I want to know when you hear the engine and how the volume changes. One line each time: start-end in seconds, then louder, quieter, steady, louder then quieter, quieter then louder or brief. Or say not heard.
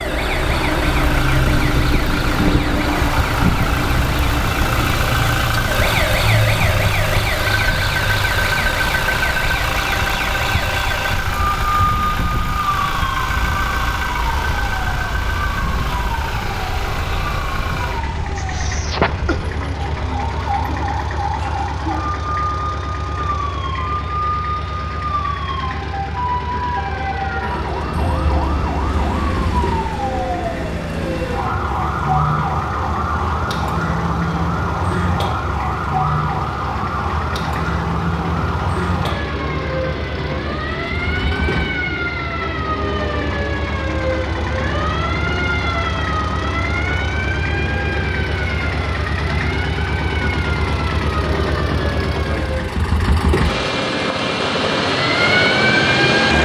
0.0-56.4 quieter then louder.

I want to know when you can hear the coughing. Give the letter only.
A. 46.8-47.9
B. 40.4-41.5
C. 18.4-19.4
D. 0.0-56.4
C.